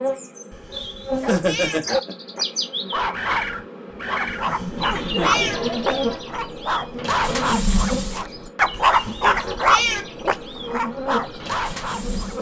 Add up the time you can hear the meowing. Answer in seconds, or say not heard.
4 s.